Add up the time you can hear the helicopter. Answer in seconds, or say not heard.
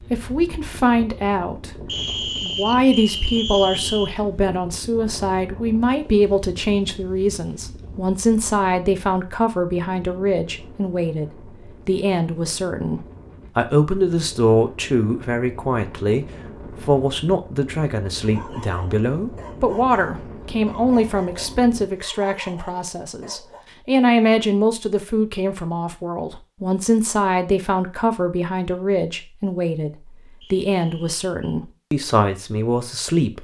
not heard.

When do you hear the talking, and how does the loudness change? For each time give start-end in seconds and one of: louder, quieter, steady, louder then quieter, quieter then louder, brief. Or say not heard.
0.1-33.4 steady.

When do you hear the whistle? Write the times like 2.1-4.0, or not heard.
1.9-4.2, 30.4-31.6.